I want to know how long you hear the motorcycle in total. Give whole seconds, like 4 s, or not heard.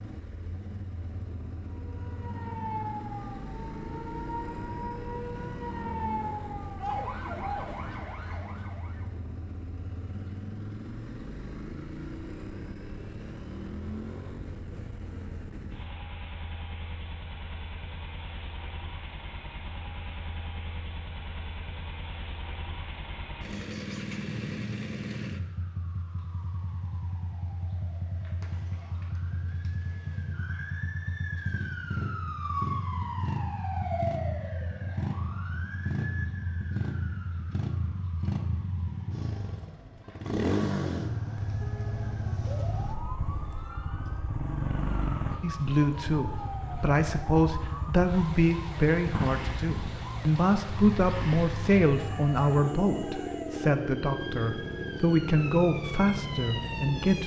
57 s.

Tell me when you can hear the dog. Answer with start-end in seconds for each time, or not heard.
not heard.